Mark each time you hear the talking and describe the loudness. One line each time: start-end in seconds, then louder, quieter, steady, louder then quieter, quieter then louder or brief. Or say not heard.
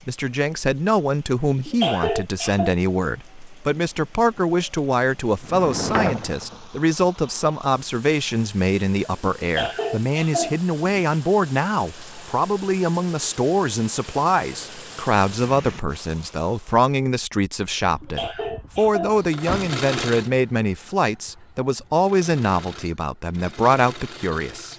0.1-24.7 steady.